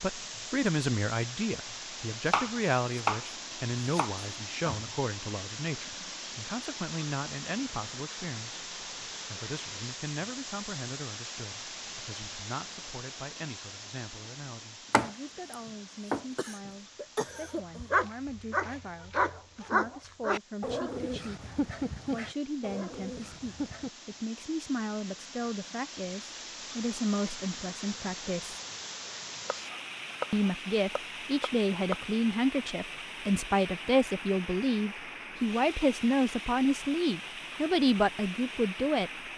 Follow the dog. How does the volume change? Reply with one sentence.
The loudness of the dog goes down.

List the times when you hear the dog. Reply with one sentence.
You can hear the dog from 17.4 to 23.9 s.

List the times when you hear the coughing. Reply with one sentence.
You can hear the coughing from 16.4 to 17.9 s.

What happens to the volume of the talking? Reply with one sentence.
The volume of the talking goes down, then up.